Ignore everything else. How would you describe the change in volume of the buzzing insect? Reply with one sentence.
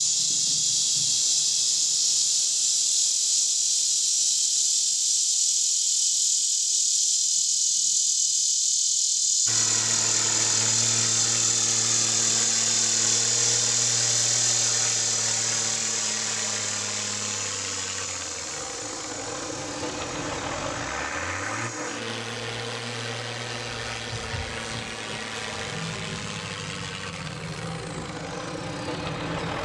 The volume of the buzzing insect goes down.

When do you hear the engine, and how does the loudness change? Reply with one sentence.
You can hear the engine from 9.4 to 29.6 s, at a steady volume.